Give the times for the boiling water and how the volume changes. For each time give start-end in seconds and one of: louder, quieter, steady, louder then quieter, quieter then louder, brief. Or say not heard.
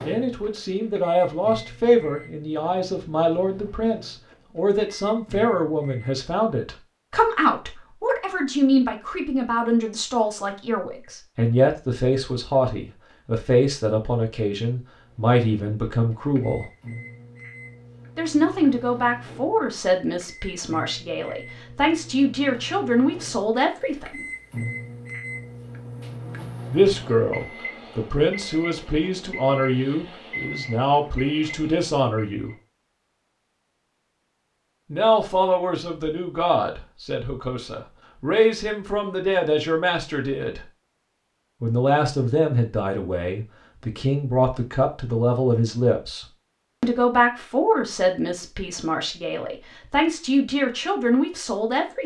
not heard.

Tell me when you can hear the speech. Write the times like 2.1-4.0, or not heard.
0.0-16.6, 18.1-24.2, 26.7-32.5, 34.9-40.6, 41.6-52.0.